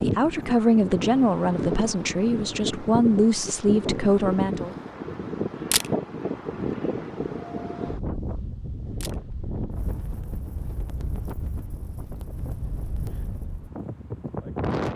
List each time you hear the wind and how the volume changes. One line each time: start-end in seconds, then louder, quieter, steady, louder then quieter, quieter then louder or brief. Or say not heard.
0.0-14.9 quieter.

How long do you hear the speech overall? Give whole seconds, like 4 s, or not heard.
5 s.